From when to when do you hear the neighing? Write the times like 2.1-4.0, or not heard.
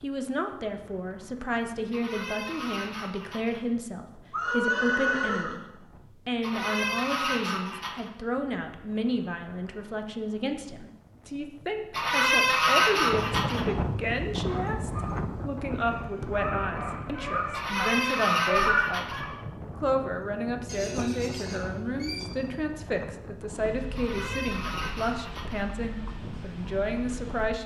4.3-5.6, 20.6-22.2.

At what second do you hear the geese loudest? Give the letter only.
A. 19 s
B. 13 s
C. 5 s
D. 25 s
B.